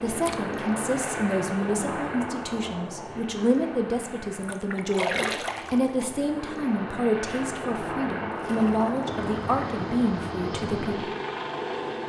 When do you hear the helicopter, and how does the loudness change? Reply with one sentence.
The helicopter can be heard from 0.0 to 12.0 s, getting quieter then louder.